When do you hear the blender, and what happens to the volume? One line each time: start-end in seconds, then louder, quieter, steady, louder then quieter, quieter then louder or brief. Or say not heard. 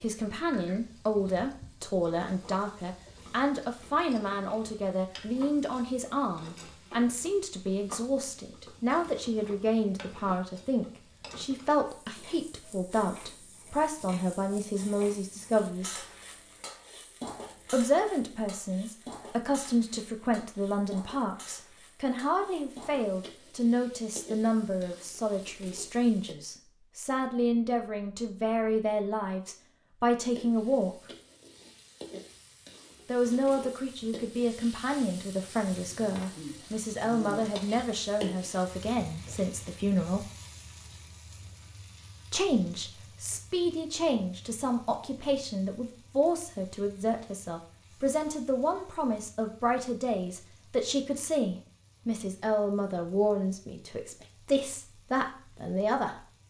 not heard.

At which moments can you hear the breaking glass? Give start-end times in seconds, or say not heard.
not heard.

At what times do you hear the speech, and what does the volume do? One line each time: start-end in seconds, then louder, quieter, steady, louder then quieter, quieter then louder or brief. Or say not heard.
0.0-16.0 steady
17.7-31.1 steady
33.0-40.2 steady
42.3-56.2 steady.